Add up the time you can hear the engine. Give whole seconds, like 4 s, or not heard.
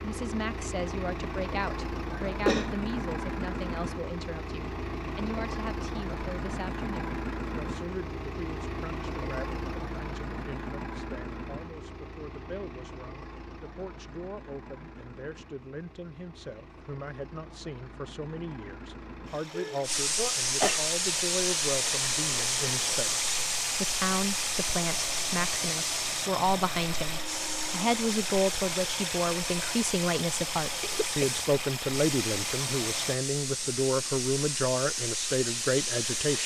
33 s.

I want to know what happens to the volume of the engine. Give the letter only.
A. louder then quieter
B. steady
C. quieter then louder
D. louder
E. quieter
C.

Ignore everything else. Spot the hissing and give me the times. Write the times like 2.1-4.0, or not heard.
19.8-36.4.